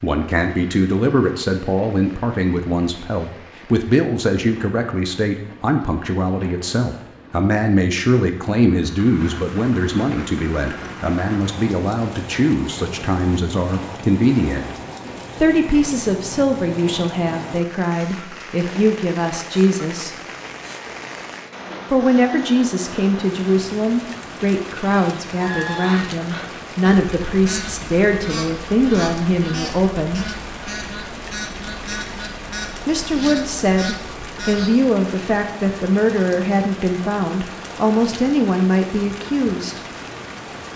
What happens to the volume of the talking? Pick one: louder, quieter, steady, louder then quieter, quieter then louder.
steady.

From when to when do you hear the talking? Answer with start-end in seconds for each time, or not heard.
0.0-14.7, 15.4-20.1, 21.9-30.3, 32.9-39.8.